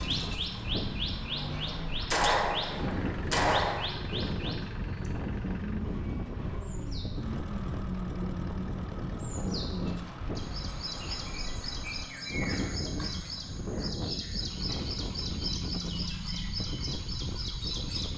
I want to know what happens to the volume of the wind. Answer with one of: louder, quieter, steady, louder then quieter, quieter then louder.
steady.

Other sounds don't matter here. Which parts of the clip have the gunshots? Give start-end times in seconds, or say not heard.
2.1-3.9.